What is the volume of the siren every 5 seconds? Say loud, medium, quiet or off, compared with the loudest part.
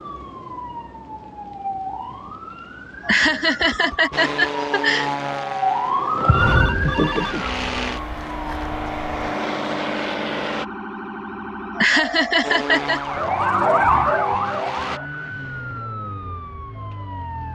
medium, loud, loud, medium.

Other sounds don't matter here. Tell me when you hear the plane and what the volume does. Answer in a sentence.
You can hear the plane from 4.1 to 10.7 s, getting quieter then louder; and briefly from 12.4 to 15.0 s.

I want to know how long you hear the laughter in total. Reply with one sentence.
The laughter can be heard for 3 seconds in total.